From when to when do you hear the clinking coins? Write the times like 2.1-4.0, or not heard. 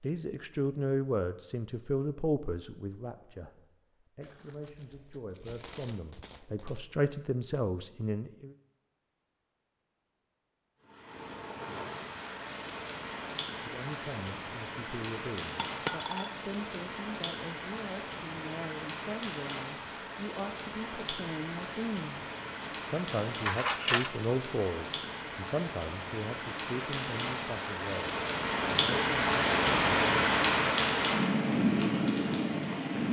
4.2-6.8, 15.6-16.3, 23.1-24.1.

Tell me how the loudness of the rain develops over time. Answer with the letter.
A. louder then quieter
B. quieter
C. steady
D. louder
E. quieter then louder
D.